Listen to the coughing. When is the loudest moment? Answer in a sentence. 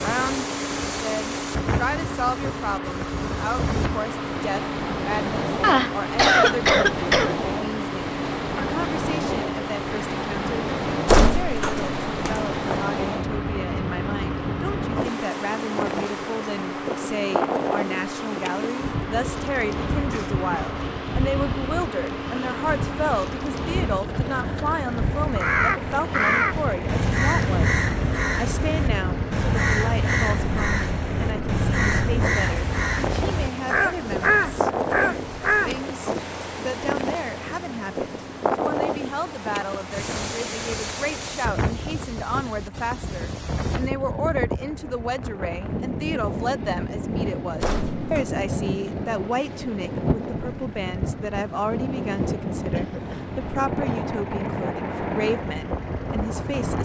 The volume of the coughing peaks at 6 seconds.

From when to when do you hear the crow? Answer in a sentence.
You can hear the crow from 25.4 to 35.8 s.